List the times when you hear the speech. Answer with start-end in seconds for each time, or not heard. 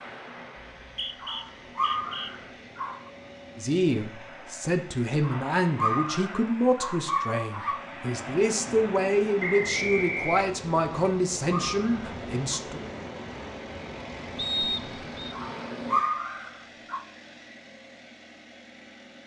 3.5-12.8.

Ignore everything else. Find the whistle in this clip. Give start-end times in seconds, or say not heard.
0.6-2.3, 9.4-10.4, 14.3-15.3.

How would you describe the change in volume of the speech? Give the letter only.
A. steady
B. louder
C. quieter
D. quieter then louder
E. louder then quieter
A.